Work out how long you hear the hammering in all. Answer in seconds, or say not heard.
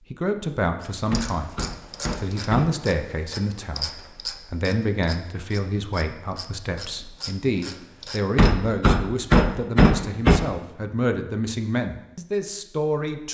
4 s.